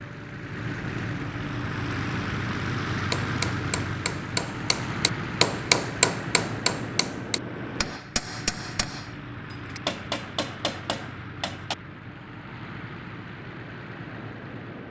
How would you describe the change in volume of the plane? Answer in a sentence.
The loudness of the plane goes down.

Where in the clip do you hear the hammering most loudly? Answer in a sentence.
The loudest moment of the hammering is at 6 seconds.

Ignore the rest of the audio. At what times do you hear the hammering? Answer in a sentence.
You can hear the hammering from 3.1 to 11.8 s.